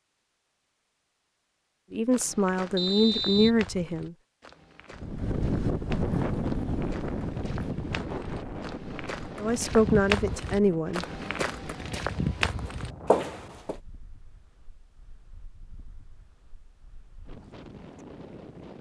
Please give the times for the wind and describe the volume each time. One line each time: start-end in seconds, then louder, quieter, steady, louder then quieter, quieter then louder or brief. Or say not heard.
4.9-18.7 quieter.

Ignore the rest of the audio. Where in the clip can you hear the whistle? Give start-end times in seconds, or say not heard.
2.8-3.5.